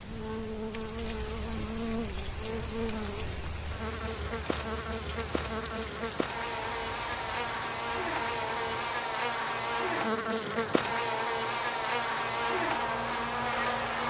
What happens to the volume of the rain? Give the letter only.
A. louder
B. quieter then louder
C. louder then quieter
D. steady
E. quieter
D.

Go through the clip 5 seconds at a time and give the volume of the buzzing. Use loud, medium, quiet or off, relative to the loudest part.
medium, loud, loud.